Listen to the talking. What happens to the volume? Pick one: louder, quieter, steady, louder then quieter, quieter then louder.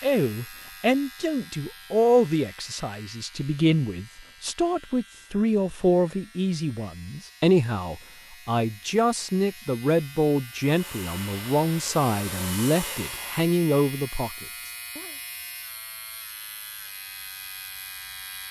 steady.